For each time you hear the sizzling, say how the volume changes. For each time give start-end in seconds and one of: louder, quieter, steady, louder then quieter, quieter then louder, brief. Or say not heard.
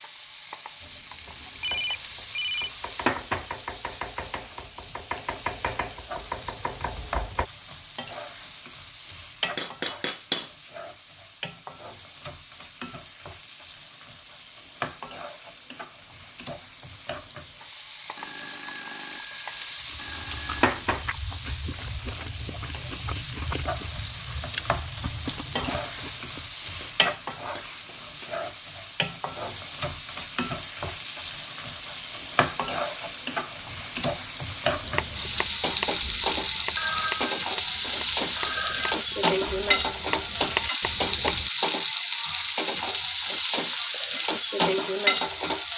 0.0-45.7 louder.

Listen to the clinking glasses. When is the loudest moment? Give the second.
10 s.